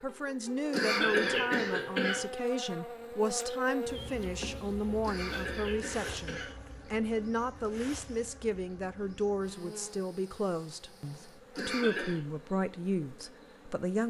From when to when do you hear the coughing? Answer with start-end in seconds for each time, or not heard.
0.7-2.2, 5.0-6.5, 11.6-12.2.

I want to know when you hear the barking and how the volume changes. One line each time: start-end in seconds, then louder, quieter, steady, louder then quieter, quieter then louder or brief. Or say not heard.
not heard.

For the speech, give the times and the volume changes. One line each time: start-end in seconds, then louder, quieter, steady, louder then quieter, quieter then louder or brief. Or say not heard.
0.0-14.0 steady.